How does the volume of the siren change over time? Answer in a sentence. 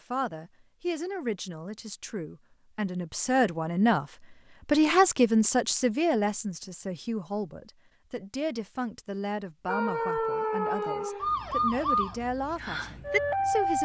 The volume of the siren goes down, then up.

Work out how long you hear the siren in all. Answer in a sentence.
The siren can be heard for 4 seconds in total.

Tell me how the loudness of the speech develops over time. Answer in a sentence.
The volume of the speech goes up, then down.